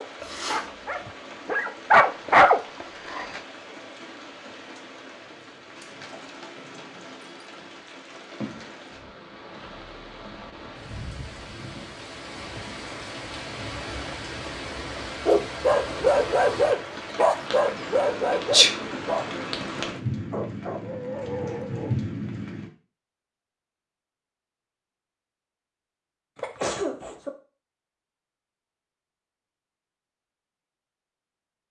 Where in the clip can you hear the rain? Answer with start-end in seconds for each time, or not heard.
0.0-22.7.